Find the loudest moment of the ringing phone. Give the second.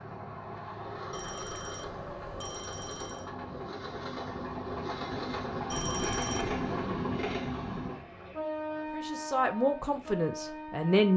6 s.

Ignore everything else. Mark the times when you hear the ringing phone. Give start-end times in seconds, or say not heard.
1.1-3.3, 5.7-6.5.